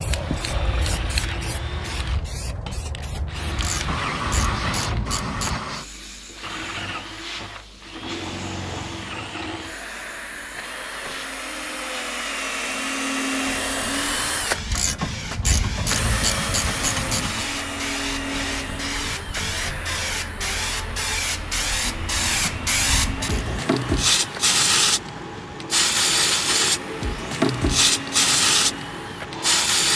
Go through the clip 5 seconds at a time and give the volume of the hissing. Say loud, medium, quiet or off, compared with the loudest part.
medium, quiet, quiet, medium, loud, loud.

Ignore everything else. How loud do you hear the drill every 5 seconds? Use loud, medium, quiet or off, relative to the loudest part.
medium, medium, loud, loud, medium, medium.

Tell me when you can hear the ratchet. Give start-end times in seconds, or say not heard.
3.5-5.6, 14.6-17.4, 22.2-23.6.